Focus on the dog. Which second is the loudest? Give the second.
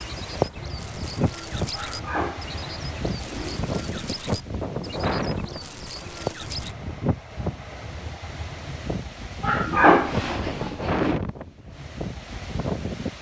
10 s.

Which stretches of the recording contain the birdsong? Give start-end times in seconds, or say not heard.
0.0-6.8.